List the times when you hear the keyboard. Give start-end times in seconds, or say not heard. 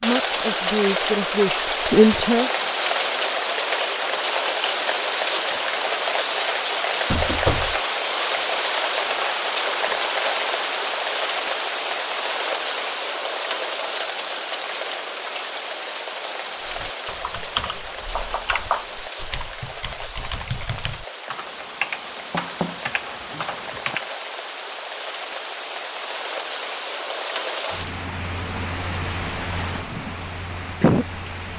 16.6-24.1.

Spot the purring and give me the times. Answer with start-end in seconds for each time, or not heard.
not heard.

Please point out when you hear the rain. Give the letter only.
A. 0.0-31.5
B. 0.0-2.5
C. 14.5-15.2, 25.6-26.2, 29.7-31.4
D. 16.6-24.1
A.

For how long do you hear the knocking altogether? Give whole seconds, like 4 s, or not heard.
3 s.